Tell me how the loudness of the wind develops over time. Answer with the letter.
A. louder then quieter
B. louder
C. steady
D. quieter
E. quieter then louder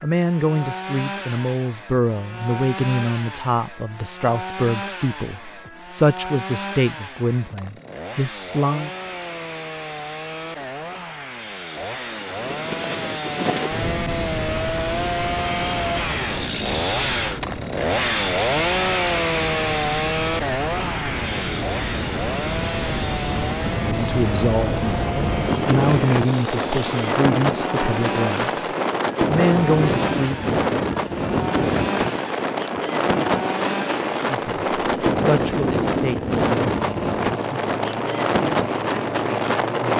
B.